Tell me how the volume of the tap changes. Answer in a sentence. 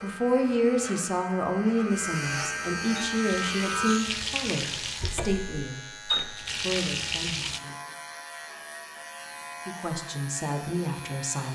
The volume of the tap goes down, then up.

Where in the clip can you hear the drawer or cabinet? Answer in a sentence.
The drawer or cabinet can be heard from 5.0 to 5.7 s.